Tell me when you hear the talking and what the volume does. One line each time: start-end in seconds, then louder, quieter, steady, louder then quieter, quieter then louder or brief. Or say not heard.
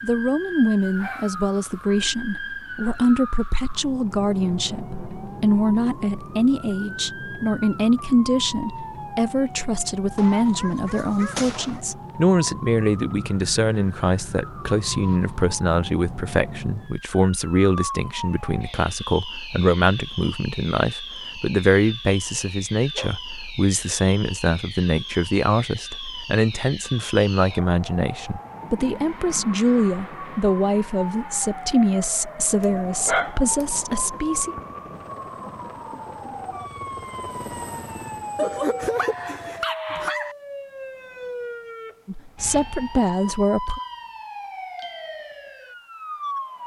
0.0-34.5 steady
42.0-43.8 brief.